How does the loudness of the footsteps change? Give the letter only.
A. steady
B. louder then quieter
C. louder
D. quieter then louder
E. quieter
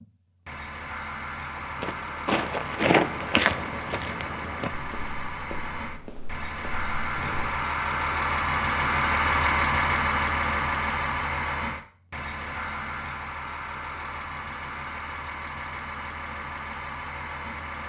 B.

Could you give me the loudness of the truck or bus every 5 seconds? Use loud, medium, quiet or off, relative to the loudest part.
medium, loud, loud, medium.